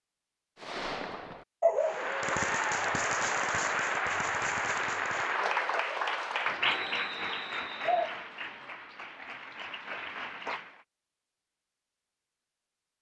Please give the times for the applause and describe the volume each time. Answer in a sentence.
The applause can be heard from 1.8 to 10.8 s, getting quieter.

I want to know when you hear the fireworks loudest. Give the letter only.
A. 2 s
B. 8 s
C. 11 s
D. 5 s
A.